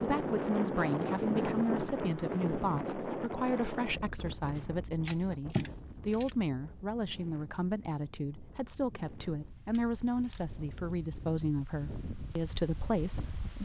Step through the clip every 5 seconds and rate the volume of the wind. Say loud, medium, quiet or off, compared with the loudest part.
loud, quiet, quiet.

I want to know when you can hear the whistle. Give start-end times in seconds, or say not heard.
not heard.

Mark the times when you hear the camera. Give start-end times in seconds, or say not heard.
0.9-1.5, 4.6-6.3, 9.7-10.5.